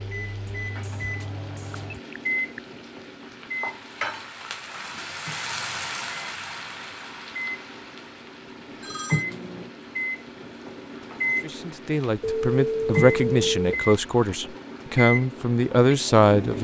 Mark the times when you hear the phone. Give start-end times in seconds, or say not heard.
1.7-2.6, 8.8-9.2, 12.2-13.8.